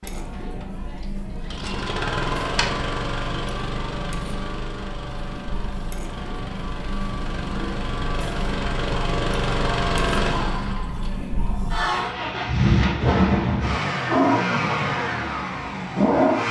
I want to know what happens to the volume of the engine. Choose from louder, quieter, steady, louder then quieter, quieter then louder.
quieter then louder.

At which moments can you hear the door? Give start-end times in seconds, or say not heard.
not heard.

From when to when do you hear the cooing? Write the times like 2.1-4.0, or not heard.
not heard.